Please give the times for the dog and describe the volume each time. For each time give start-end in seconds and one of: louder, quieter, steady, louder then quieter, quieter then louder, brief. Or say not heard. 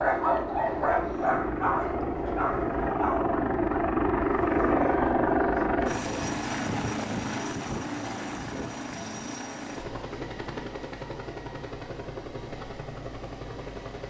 0.0-6.2 quieter.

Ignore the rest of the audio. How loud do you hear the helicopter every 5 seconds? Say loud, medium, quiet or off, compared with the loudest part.
loud, loud, medium.